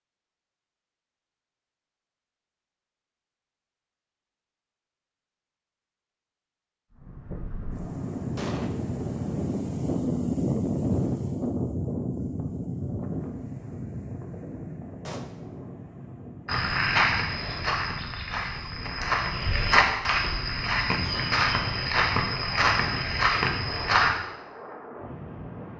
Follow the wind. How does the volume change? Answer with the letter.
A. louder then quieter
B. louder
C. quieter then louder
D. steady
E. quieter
E.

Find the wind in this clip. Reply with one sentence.
The wind can be heard from 6.9 to 25.7 s.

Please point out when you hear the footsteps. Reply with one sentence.
The footsteps can be heard from 16.4 to 24.1 s.